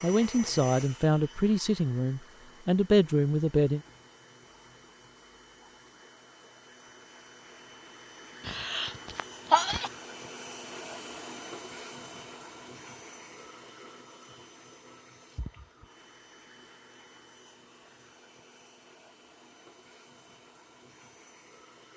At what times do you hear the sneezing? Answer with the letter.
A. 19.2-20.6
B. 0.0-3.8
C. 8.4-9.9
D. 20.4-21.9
C.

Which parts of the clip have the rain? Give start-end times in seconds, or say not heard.
not heard.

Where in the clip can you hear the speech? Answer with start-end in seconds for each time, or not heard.
0.0-3.8.